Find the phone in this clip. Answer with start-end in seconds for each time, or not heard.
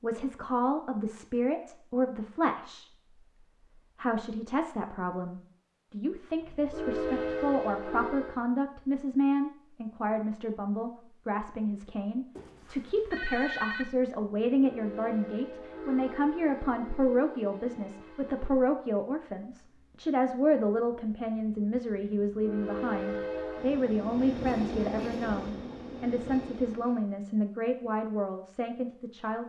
12.3-13.8.